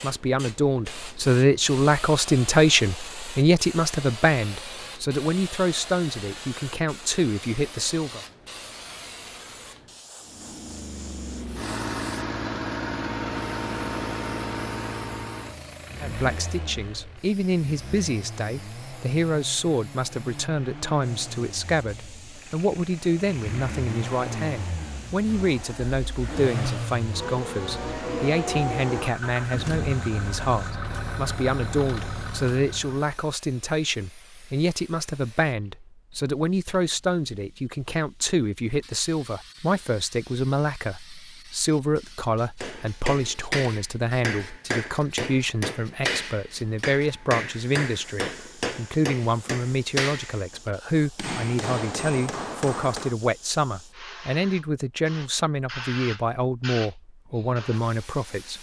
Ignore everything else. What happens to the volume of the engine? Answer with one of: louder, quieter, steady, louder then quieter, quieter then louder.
quieter then louder.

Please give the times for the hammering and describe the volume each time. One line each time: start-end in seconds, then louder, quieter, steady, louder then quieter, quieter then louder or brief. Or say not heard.
42.6-53.1 steady.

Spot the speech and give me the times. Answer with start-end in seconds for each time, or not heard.
0.0-8.2, 16.0-58.5.